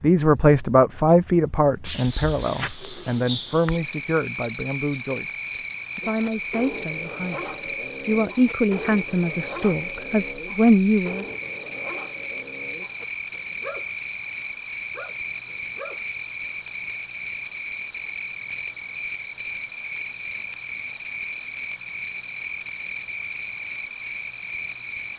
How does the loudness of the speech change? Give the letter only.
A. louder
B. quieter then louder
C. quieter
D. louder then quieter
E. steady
B.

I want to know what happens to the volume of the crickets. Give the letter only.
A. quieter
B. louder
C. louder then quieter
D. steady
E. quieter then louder
D.